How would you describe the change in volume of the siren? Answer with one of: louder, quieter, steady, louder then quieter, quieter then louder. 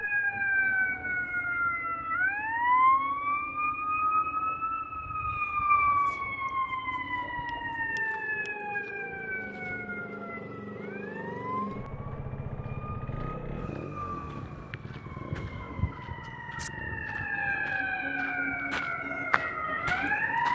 quieter then louder.